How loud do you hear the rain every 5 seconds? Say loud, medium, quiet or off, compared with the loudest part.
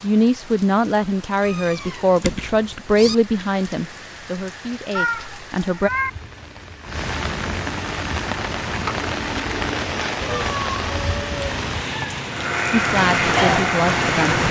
quiet, loud, loud.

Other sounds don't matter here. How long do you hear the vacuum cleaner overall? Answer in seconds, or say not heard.
2 s.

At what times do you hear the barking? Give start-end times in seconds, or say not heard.
not heard.